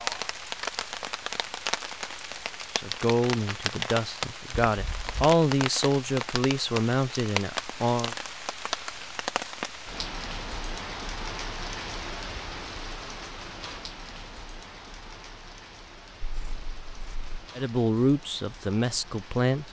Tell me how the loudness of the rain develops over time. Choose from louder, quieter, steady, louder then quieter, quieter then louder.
quieter.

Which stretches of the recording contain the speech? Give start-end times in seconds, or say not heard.
2.8-8.2, 17.6-19.6.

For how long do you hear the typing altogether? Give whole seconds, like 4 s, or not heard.
not heard.